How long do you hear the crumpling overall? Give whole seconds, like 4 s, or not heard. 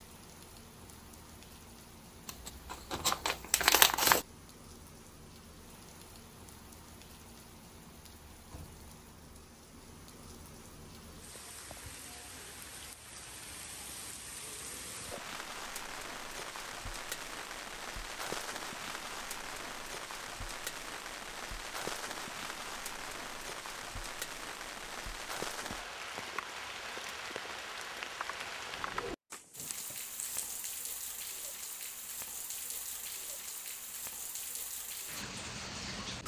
3 s.